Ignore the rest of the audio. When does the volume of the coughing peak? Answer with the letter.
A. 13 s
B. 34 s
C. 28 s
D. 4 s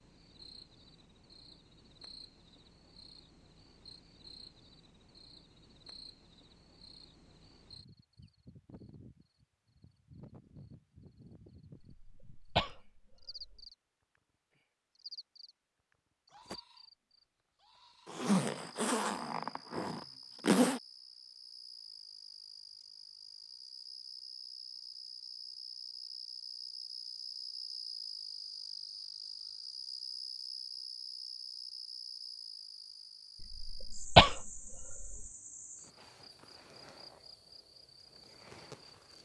B.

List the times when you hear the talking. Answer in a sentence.
You can't hear the talking here.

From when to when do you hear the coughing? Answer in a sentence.
The coughing can be heard from 12.0 to 13.7 s and from 33.4 to 35.2 s.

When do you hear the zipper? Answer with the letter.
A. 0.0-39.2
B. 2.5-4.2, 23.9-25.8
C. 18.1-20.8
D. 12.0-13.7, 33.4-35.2
C.